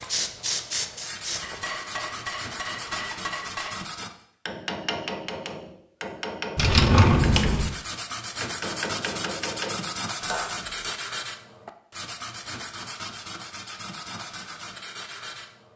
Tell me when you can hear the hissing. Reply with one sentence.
You can hear the hissing from 0.0 to 1.6 s.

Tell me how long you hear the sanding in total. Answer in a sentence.
The sanding can be heard for 13 seconds in total.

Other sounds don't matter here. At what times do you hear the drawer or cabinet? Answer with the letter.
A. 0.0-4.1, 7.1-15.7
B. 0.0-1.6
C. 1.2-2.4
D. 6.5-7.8
D.